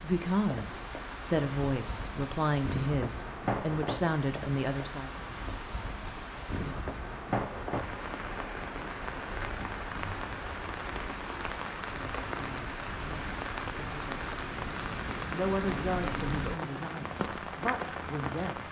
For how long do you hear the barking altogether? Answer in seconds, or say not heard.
not heard.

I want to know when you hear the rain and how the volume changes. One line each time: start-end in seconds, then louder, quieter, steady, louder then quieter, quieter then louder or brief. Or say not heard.
0.0-18.6 steady.